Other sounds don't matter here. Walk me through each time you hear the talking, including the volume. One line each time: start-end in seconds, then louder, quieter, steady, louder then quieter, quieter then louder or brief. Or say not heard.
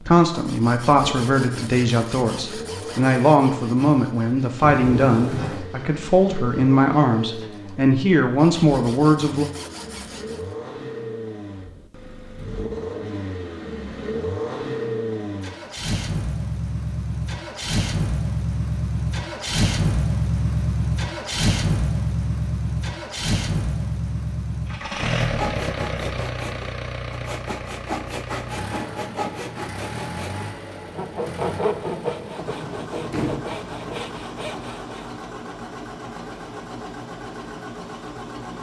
0.0-9.4 steady.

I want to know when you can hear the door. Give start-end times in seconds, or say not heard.
4.6-5.7, 33.1-33.5.